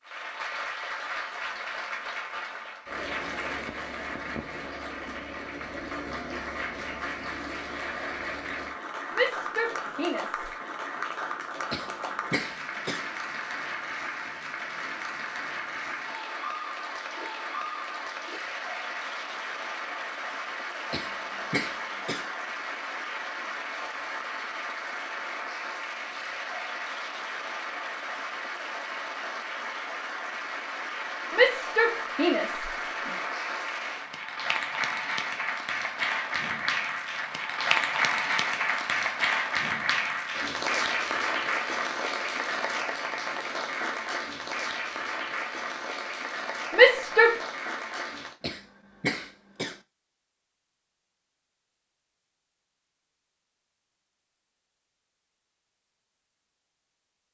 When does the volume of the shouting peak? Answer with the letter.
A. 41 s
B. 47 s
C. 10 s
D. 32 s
B.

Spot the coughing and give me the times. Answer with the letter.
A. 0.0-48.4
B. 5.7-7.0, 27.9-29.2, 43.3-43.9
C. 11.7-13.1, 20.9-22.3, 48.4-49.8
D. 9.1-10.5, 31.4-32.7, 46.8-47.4
C.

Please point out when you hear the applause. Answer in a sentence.
The applause can be heard from 0.0 to 48.4 s.